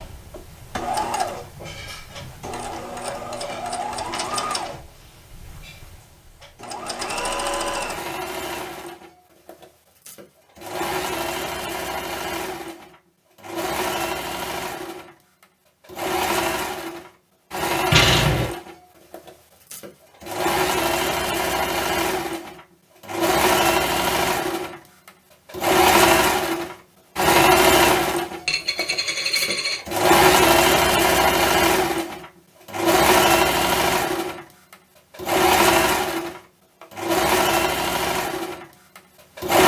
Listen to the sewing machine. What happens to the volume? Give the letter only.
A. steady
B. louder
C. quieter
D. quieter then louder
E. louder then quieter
B.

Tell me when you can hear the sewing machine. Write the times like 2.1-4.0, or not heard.
0.0-39.6.